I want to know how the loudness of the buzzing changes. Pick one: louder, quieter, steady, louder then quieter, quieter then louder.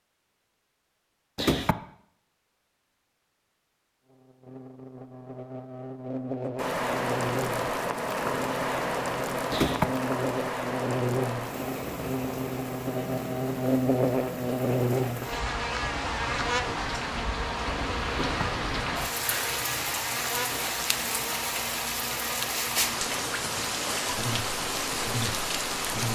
louder then quieter.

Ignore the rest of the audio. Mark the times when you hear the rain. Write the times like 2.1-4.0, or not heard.
6.5-26.1.